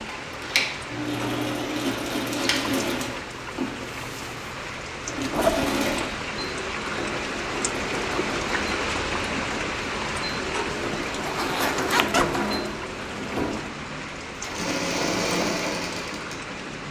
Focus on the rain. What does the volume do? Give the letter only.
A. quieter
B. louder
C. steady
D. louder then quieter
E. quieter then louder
D.